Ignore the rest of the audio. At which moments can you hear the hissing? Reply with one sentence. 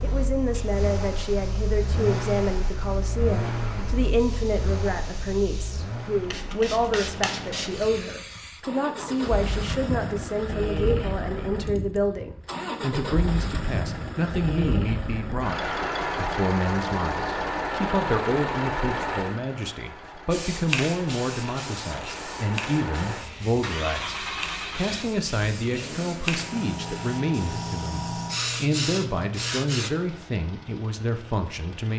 The hissing can be heard from 0.0 to 9.6 s and from 20.3 to 29.9 s.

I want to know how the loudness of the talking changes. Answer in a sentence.
The volume of the talking stays about the same.